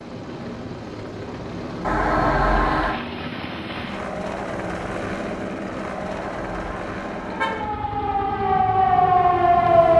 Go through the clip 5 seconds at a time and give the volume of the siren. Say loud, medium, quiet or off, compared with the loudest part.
off, loud.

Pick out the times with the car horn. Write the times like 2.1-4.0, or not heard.
1.8-3.0, 6.0-7.7.